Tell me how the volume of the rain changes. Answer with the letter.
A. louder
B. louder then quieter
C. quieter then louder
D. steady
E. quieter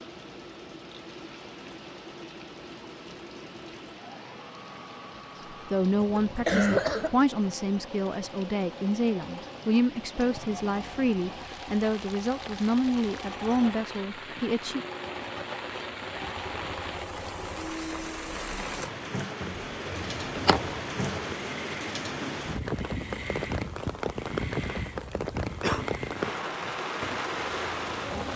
A.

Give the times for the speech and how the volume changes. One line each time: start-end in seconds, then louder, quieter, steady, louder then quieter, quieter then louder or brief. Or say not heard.
5.5-14.8 steady.